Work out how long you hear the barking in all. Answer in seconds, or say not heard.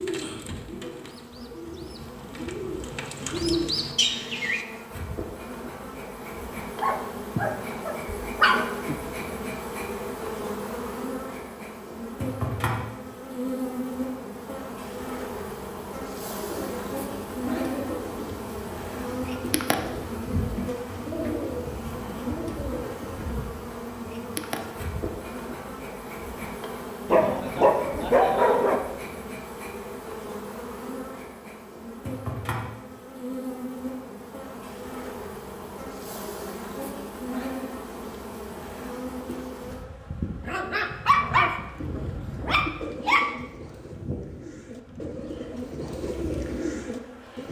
7 s.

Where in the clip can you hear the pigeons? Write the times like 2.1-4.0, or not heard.
0.0-4.7, 16.4-24.9, 41.8-47.4.